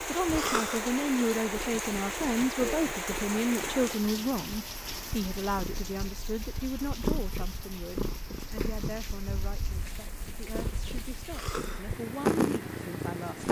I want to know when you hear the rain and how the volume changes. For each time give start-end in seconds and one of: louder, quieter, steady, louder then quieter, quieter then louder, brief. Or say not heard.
0.0-13.4 quieter.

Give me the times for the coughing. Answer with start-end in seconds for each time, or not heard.
0.3-0.8, 11.3-11.8.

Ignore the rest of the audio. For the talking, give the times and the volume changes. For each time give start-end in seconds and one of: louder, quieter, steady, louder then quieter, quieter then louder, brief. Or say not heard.
0.1-13.4 quieter.